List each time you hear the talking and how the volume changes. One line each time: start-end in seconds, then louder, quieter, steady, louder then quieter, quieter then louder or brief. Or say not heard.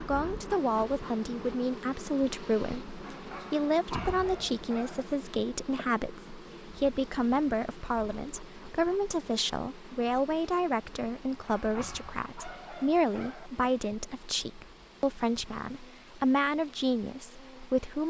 0.0-18.0 steady.